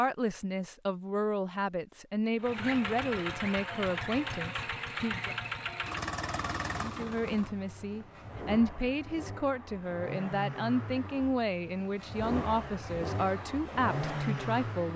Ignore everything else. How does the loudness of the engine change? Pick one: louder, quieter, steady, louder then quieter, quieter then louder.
quieter then louder.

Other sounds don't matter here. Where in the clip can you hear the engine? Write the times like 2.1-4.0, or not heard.
2.4-14.9.